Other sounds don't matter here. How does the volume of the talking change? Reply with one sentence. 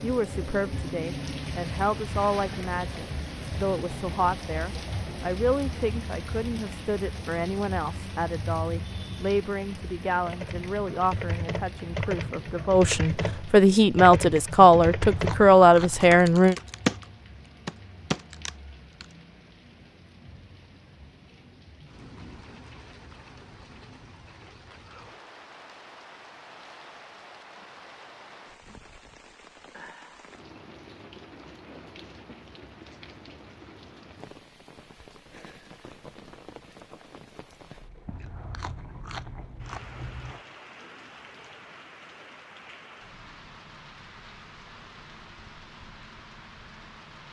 The loudness of the talking goes up.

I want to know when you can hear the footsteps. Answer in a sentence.
You can't hear the footsteps here.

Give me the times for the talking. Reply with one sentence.
The talking can be heard from 0.0 to 16.6 s.